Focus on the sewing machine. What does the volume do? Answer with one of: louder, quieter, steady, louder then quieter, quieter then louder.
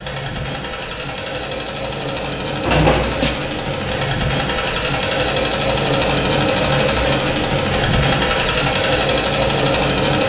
louder.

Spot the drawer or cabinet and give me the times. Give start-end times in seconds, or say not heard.
2.6-3.4.